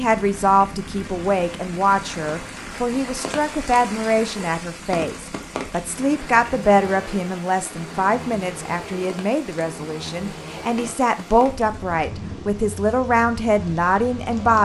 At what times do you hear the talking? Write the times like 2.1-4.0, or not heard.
0.0-14.6.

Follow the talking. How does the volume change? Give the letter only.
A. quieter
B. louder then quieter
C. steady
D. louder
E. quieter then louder
C.